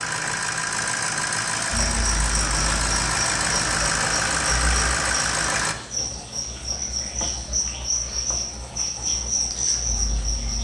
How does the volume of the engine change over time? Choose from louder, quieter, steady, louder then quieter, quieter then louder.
steady.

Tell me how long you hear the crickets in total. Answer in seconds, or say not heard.
9 s.